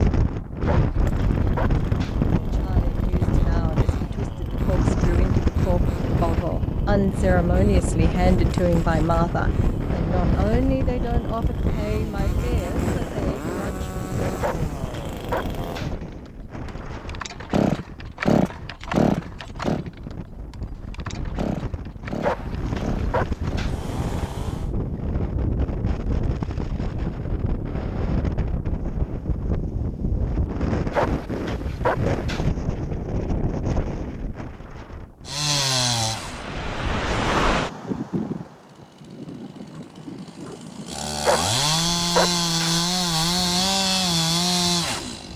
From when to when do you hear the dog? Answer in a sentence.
The dog can be heard from 0.7 to 2.2 s, from 14.4 to 15.9 s, from 22.2 to 23.8 s, from 30.9 to 32.5 s and from 41.2 to 42.8 s.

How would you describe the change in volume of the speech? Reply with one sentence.
The volume of the speech goes up, then down.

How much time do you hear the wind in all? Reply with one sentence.
You can hear the wind for 45 seconds altogether.